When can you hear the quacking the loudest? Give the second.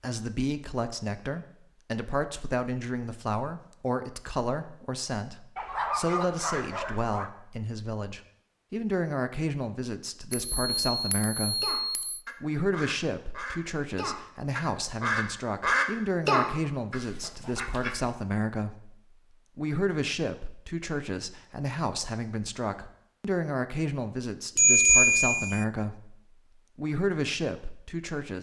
16 s.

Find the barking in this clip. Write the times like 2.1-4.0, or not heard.
5.5-7.3.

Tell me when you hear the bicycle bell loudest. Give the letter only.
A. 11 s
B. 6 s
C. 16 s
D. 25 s
D.